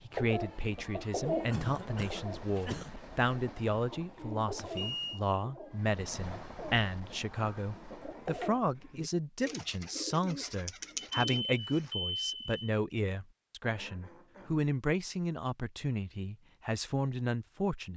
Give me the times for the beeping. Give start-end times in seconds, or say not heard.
4.5-5.2, 10.9-12.7.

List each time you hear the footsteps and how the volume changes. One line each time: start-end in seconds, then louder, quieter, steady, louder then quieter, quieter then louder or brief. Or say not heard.
not heard.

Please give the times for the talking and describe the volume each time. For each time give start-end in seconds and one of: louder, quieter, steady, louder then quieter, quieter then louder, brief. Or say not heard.
0.0-17.9 steady.